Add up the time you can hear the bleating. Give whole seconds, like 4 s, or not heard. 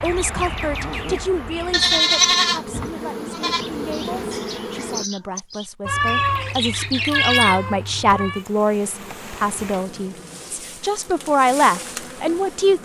3 s.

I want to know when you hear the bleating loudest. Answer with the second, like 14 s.
2 s.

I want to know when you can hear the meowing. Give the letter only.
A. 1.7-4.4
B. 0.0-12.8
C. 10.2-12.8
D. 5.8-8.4
D.